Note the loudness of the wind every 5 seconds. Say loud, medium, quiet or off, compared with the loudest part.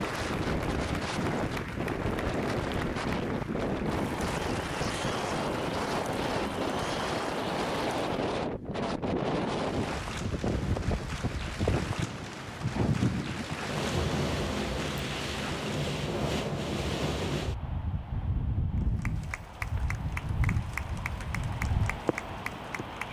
loud, loud, loud, loud, medium.